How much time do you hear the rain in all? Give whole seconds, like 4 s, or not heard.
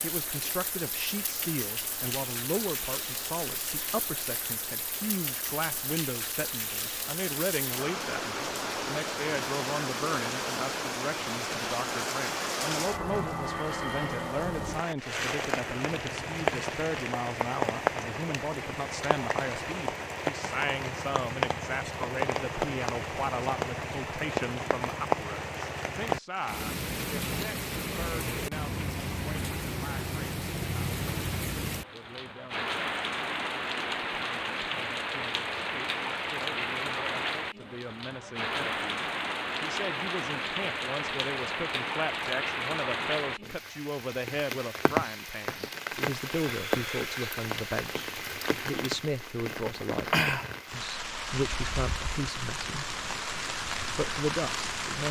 55 s.